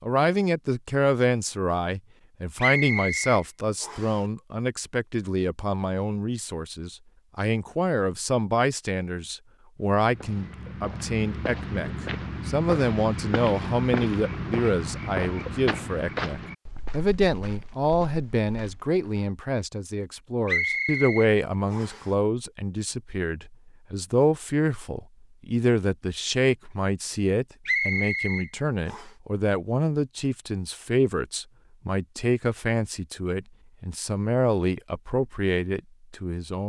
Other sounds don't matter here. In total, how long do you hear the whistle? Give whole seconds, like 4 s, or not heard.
5 s.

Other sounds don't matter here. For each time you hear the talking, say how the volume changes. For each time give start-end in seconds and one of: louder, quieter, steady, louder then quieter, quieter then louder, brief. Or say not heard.
0.0-36.6 steady.